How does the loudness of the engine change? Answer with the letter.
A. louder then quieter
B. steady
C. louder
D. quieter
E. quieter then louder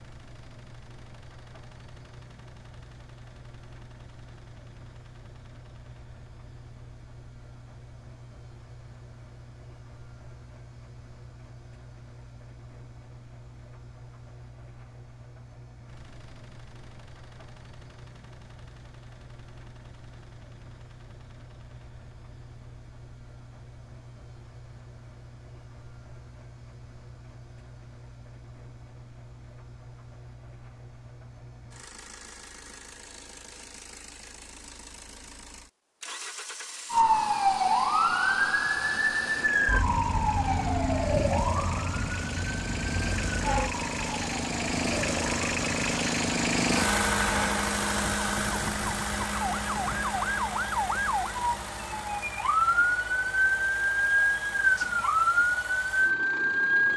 C.